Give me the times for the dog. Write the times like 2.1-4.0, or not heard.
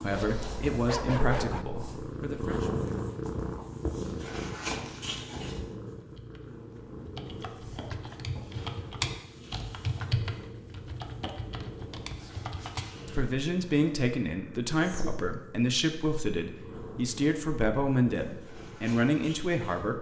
0.1-1.6.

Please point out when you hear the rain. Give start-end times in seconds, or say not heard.
not heard.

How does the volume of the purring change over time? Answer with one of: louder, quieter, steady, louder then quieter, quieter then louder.
quieter.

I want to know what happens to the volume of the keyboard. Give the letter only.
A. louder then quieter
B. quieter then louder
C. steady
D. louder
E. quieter
A.